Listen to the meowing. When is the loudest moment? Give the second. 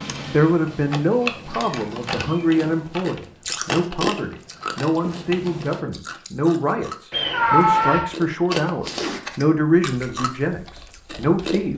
8 s.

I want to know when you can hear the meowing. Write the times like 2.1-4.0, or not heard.
1.4-2.5, 7.1-8.1.